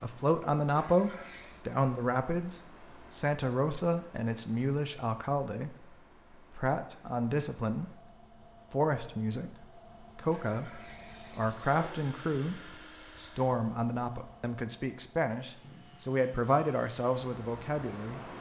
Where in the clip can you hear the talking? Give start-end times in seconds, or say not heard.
0.0-8.0, 8.7-18.3.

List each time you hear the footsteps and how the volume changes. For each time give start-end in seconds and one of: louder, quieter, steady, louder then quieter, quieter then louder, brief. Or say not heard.
not heard.